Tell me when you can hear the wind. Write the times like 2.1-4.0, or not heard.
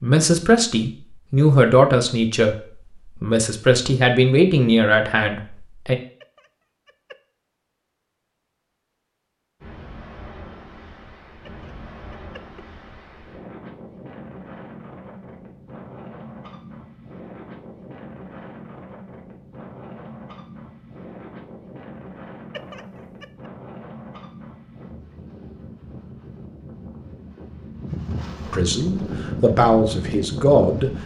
9.6-31.0.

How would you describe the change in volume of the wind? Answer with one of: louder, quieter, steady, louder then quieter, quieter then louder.
louder.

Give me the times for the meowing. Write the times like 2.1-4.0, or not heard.
6.2-7.2, 11.4-12.7, 22.5-23.2.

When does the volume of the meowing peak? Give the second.
23 s.